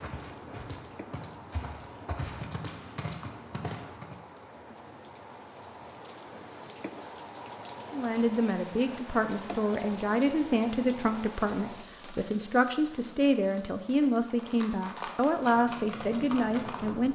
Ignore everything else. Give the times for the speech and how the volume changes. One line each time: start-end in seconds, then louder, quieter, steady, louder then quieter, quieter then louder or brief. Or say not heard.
7.9-17.1 steady.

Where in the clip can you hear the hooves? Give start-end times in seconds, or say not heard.
0.0-4.2, 14.2-17.0.